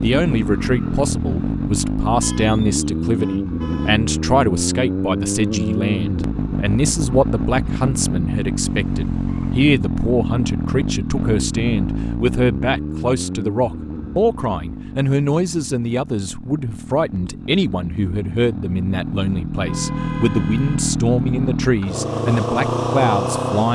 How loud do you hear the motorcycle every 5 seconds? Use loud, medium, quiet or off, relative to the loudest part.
loud, loud, loud, medium, loud.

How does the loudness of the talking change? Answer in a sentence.
The loudness of the talking stays about the same.